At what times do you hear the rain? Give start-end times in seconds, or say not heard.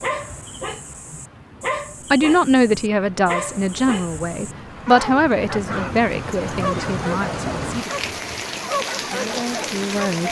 0.0-10.2.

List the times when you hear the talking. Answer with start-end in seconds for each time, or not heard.
2.1-8.1, 9.1-10.2.